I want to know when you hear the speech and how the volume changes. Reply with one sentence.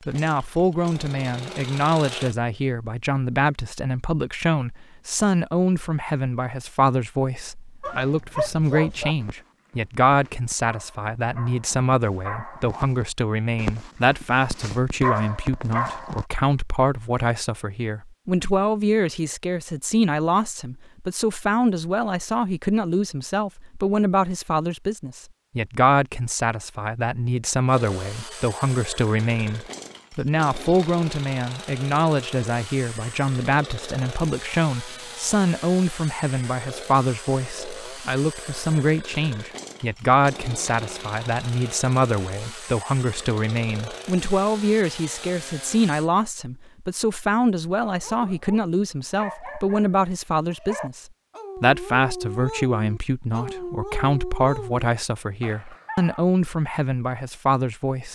The speech can be heard from 0.1 to 58.1 s, at a steady volume.